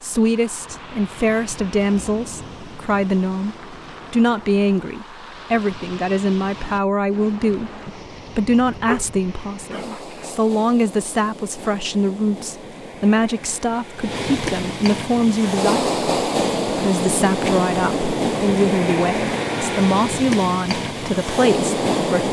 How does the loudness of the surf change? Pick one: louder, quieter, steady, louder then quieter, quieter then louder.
louder.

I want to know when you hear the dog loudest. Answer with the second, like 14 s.
9 s.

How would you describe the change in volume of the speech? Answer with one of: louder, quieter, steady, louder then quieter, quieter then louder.
steady.